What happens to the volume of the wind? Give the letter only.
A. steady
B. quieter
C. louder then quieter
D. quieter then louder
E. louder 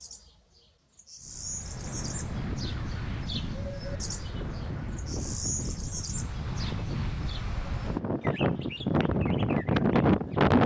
E.